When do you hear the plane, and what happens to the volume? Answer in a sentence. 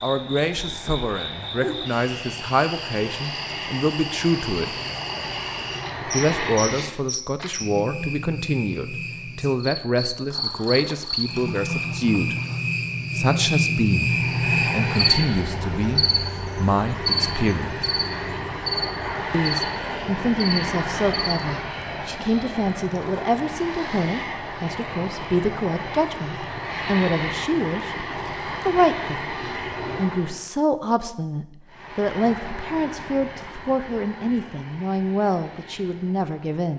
The plane can be heard from 0.0 to 7.0 s, getting louder; from 14.0 to 30.4 s, at a steady volume; and from 31.6 to 36.7 s, getting quieter.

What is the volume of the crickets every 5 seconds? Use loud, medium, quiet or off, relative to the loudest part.
medium, medium, loud, loud, off, off, off, off.